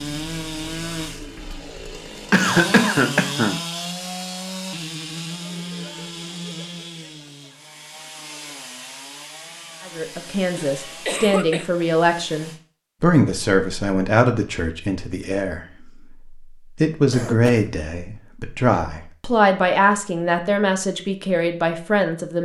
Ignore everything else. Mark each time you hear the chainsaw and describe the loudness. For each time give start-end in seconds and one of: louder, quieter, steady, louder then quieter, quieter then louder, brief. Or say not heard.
0.0-12.6 quieter.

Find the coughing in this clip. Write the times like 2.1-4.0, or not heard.
2.3-3.6, 10.6-11.7, 17.1-17.7.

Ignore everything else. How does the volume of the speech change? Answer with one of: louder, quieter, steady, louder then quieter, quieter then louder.
steady.